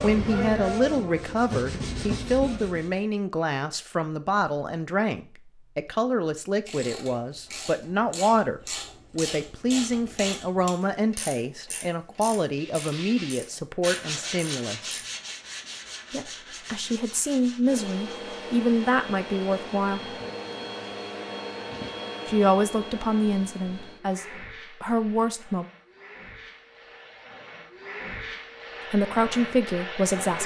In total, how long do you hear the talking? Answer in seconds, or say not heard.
24 s.